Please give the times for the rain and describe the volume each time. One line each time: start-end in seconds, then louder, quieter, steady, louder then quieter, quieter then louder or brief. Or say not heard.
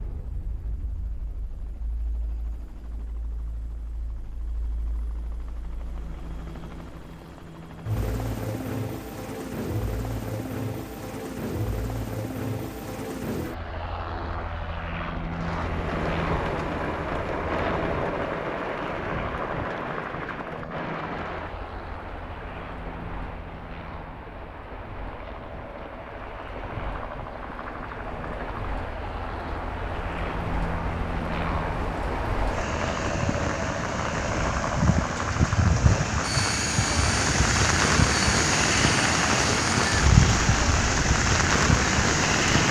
15.3-42.6 quieter then louder.